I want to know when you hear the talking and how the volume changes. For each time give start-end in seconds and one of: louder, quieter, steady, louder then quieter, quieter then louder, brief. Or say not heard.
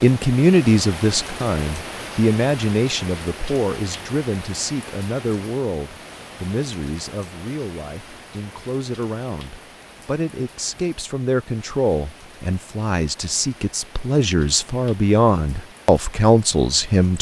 0.0-17.1 quieter then louder.